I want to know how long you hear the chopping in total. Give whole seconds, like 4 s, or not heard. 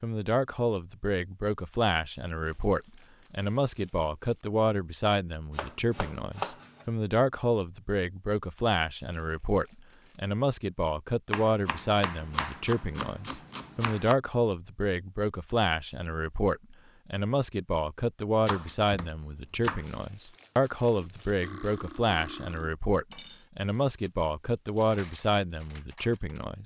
6 s.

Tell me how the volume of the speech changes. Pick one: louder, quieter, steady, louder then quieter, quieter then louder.
steady.